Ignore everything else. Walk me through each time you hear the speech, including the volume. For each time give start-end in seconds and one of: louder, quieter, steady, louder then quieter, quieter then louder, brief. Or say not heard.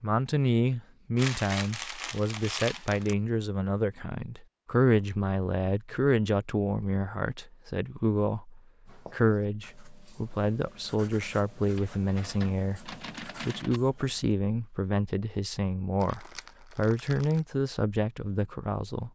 0.0-19.1 steady.